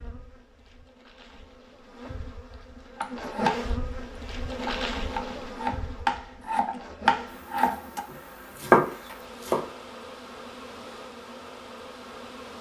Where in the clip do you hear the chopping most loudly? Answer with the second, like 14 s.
9 s.